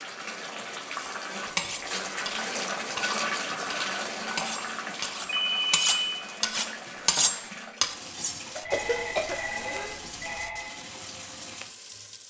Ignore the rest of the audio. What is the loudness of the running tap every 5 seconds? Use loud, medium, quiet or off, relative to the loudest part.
loud, medium, medium.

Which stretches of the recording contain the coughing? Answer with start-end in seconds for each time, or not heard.
8.6-10.0.